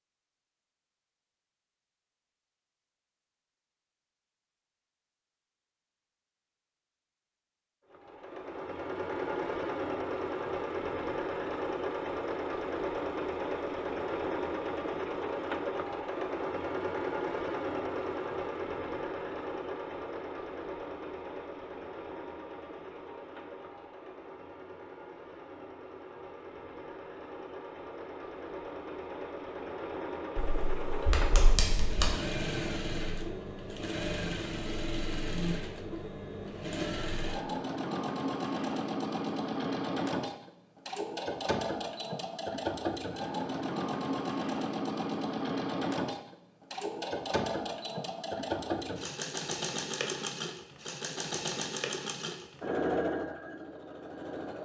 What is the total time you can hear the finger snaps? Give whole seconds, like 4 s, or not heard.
2 s.